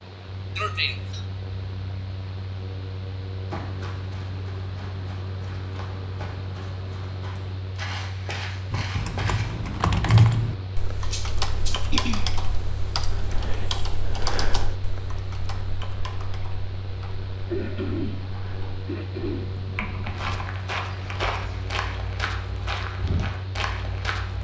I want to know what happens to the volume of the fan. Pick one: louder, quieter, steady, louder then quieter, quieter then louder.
steady.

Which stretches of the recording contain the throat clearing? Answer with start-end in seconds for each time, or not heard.
0.6-1.2, 11.0-12.3, 17.5-19.6.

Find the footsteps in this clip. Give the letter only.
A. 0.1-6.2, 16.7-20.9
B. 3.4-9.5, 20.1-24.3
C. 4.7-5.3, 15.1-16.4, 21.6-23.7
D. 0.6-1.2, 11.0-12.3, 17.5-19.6
B.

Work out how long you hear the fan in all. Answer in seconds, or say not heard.
24 s.